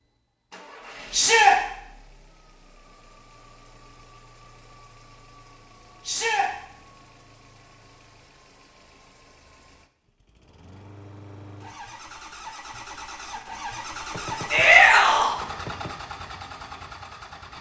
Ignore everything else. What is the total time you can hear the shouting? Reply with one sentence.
The shouting can be heard for 2 seconds in total.